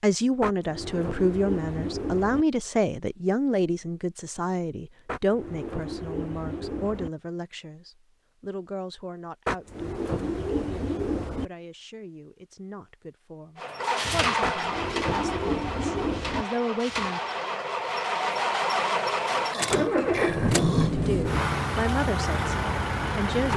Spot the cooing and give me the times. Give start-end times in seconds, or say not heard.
0.4-2.5, 5.0-7.1, 9.4-11.4, 14.4-16.4, 19.7-21.5.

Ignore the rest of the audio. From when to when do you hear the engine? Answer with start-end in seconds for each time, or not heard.
13.6-23.5.